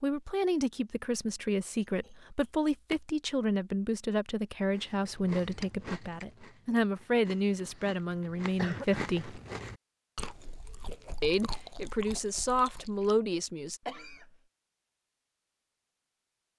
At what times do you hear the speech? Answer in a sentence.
You can hear the speech from 0.0 to 9.4 s and from 11.2 to 13.8 s.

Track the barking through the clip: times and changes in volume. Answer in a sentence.
The barking can't be heard in this clip.